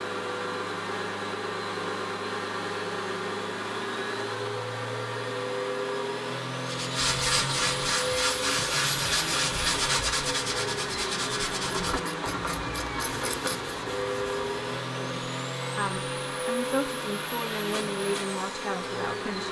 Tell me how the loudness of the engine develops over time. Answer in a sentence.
The loudness of the engine stays about the same.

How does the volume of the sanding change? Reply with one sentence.
The volume of the sanding goes down.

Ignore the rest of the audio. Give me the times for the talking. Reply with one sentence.
The talking can be heard from 14.9 to 19.4 s.